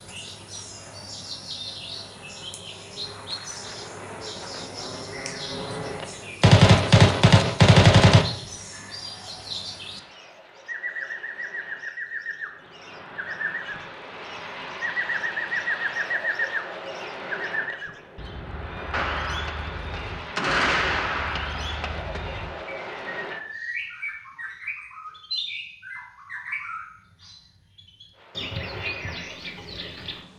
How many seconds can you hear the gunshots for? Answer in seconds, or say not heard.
5 s.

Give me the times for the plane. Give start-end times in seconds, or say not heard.
0.0-6.3, 8.4-23.4, 28.1-30.3.